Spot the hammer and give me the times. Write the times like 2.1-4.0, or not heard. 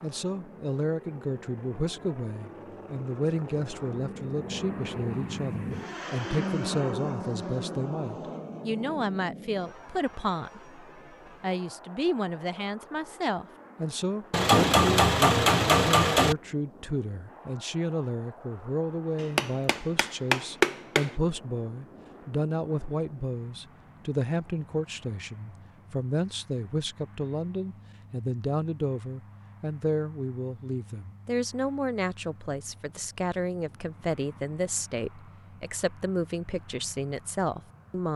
14.3-16.4, 19.2-21.1.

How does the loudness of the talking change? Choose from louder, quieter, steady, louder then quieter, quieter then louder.
steady.